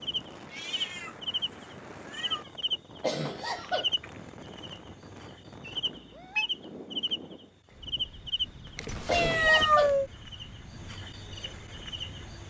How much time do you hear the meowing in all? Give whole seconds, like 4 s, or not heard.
4 s.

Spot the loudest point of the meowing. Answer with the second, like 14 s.
10 s.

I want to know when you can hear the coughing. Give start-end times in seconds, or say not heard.
2.6-3.9, 8.7-9.9.